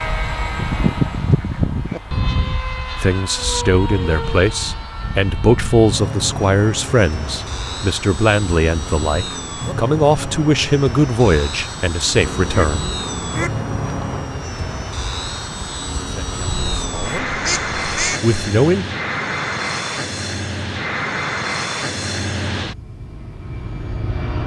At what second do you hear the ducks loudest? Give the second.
1 s.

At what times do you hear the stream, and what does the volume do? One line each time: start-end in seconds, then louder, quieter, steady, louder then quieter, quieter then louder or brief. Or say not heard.
not heard.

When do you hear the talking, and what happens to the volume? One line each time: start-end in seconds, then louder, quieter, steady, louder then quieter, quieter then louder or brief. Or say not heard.
3.0-12.9 steady
16.1-17.2 brief
18.2-18.9 brief.